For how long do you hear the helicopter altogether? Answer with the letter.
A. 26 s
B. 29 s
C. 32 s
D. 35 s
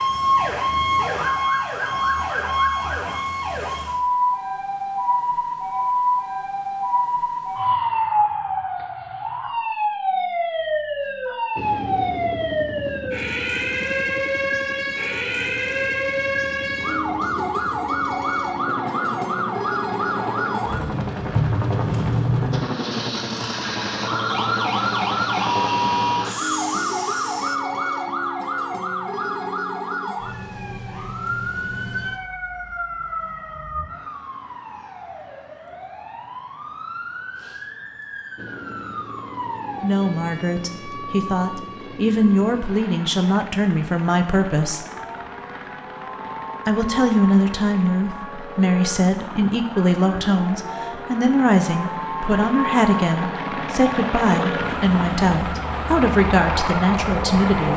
D.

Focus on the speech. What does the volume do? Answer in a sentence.
The loudness of the speech stays about the same.